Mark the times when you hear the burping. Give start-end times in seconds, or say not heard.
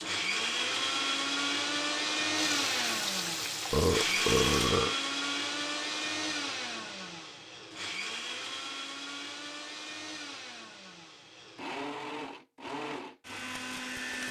3.7-5.0.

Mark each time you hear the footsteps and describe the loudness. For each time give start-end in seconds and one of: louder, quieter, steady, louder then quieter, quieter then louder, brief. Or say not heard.
not heard.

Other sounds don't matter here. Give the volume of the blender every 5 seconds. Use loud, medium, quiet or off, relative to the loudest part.
loud, medium, medium.